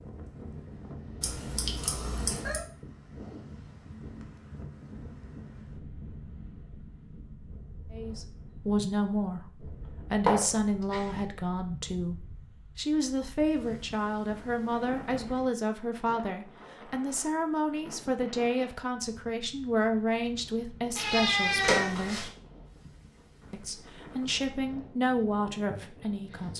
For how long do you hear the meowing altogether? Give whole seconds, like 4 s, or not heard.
4 s.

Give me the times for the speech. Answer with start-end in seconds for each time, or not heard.
7.9-22.3, 23.5-26.5.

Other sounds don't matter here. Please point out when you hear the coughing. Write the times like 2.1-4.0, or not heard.
not heard.